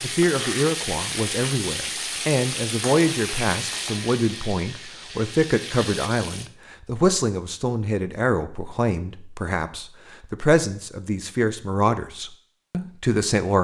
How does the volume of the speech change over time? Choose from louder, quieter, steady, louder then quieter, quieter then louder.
steady.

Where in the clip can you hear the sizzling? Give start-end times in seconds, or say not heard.
0.0-6.5.